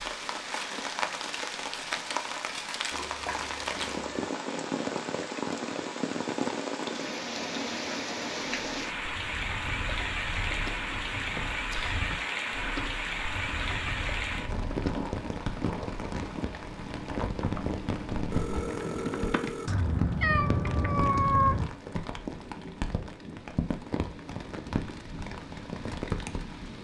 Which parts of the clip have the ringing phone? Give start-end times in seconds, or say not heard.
18.3-19.9.